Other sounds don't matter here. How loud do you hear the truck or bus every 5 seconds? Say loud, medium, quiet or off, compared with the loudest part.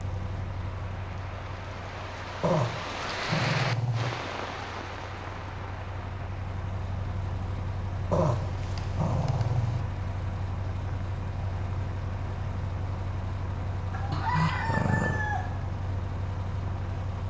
medium, loud, loud, loud.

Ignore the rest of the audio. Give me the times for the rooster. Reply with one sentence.
You can hear the rooster from 13.9 to 15.6 s.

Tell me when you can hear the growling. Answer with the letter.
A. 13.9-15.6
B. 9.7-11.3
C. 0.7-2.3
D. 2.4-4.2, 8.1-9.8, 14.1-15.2
D.